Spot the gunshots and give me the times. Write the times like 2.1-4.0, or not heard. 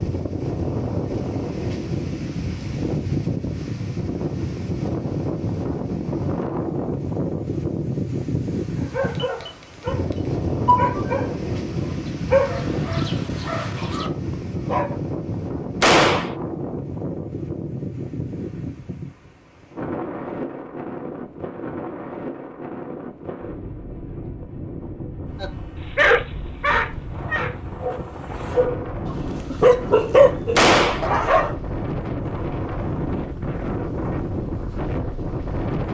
15.8-16.4, 30.6-31.1.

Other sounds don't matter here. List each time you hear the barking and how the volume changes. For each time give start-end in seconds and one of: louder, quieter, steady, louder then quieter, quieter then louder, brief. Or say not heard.
8.8-14.9 louder then quieter
25.4-31.6 quieter then louder.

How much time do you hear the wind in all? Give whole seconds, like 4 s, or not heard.
36 s.